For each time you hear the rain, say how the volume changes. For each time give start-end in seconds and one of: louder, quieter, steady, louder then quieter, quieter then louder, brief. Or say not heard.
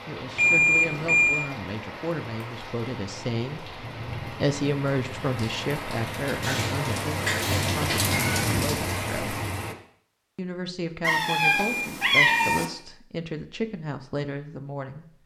0.0-9.8 louder.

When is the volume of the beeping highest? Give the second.
1 s.